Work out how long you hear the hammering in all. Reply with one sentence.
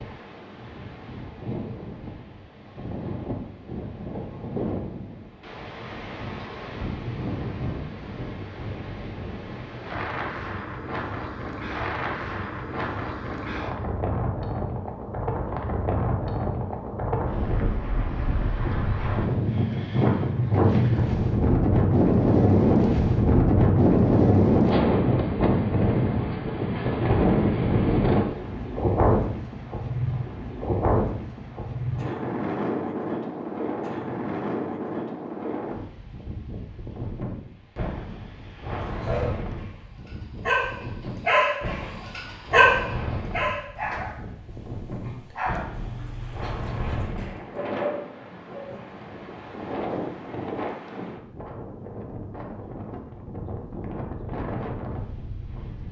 You can't hear the hammering here.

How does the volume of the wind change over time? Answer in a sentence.
The loudness of the wind goes up, then down.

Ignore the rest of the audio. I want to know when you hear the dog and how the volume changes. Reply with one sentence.
You can hear the dog from 38.8 to 48.8 s, getting louder then quieter.